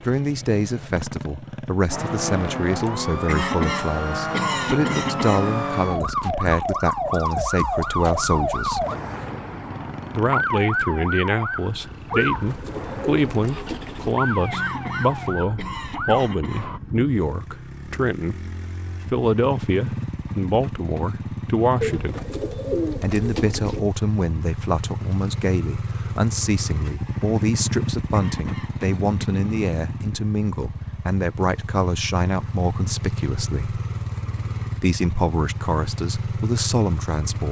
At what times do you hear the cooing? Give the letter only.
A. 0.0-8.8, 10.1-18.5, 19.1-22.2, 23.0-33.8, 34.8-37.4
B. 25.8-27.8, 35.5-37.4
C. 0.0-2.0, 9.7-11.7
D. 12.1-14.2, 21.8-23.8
D.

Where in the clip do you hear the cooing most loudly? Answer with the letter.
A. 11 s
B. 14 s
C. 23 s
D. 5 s
C.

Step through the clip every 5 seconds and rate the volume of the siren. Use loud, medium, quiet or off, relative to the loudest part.
loud, loud, loud, medium, off, off, off, off.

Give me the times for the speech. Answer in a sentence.
You can hear the speech from 0.0 to 8.8 s, from 10.1 to 18.5 s, from 19.1 to 22.2 s, from 23.0 to 33.8 s and from 34.8 to 37.4 s.